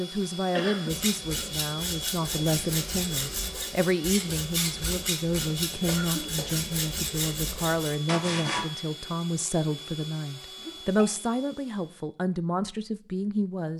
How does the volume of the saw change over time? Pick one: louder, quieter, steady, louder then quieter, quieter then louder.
steady.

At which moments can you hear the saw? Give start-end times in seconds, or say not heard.
0.8-8.7.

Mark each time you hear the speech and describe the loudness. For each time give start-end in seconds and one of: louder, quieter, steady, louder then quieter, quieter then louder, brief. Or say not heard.
0.0-13.7 steady.